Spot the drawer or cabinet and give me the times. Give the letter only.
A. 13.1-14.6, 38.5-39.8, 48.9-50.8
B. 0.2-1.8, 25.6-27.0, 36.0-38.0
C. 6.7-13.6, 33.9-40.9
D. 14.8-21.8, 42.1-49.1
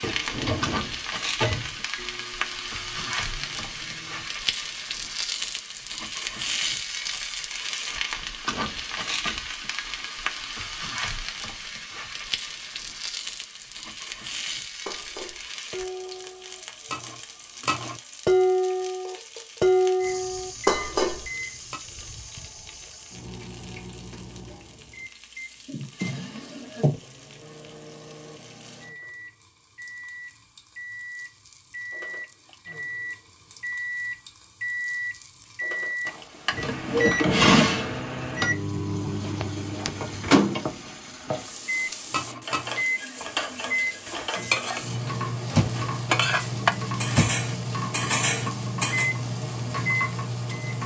B.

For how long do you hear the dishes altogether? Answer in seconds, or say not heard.
14 s.